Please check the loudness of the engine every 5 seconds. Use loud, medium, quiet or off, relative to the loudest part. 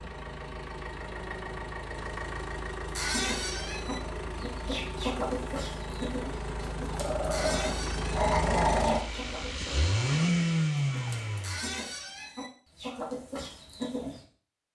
medium, medium, loud.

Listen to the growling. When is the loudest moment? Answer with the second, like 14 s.
9 s.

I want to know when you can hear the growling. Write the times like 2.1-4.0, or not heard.
7.0-9.0.